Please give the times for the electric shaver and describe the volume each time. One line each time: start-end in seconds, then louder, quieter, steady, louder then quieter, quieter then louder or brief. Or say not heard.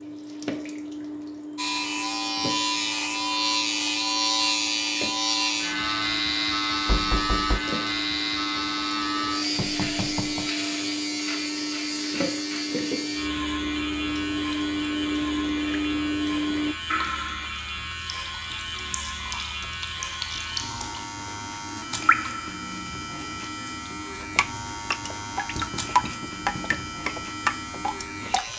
1.6-28.5 quieter.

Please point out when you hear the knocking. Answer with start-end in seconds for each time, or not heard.
6.8-7.7, 9.6-10.5, 25.4-26.9.